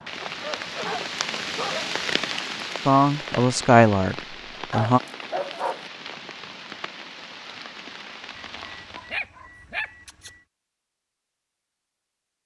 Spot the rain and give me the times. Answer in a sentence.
You can hear the rain from 0.0 to 9.2 s.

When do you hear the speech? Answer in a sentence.
You can hear the speech from 2.9 to 5.0 s.